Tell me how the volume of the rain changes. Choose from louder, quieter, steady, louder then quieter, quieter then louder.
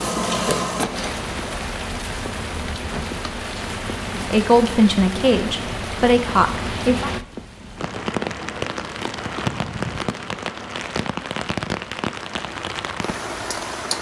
steady.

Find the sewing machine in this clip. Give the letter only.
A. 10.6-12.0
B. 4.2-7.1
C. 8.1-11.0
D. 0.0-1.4
D.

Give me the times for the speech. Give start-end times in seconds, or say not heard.
4.2-7.1.